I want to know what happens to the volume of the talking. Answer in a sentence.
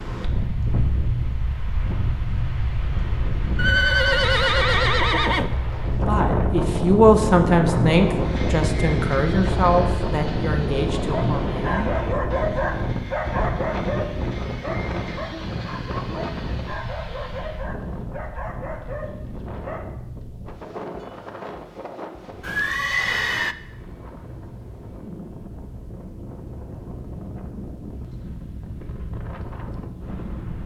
The loudness of the talking goes down.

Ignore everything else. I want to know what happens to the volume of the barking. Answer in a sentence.
The volume of the barking goes down.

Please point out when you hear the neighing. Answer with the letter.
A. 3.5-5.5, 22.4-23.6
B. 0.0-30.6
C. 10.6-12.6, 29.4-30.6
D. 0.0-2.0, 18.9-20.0
A.